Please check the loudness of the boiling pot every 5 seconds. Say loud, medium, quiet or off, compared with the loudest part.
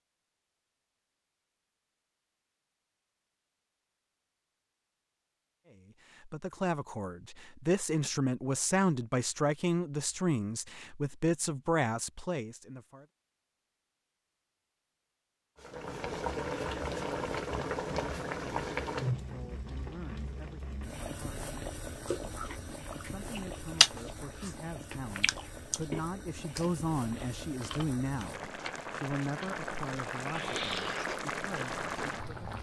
off, off, off, loud, medium, medium, loud.